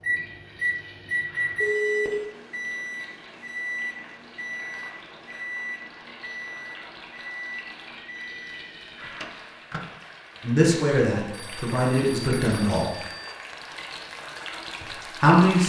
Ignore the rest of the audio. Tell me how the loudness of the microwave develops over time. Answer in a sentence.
The loudness of the microwave goes down.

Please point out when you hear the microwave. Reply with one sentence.
The microwave can be heard from 0.0 to 9.9 s.